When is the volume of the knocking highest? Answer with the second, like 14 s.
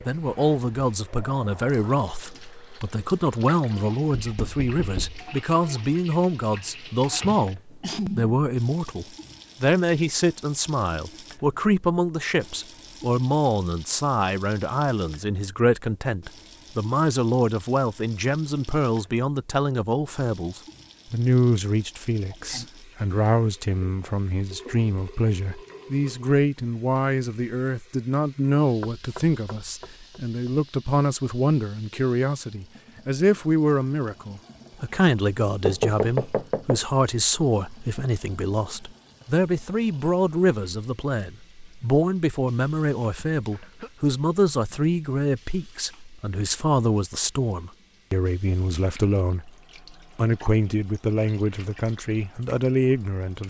36 s.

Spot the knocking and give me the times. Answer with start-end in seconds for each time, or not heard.
4.1-5.2, 28.8-30.6, 35.6-36.8.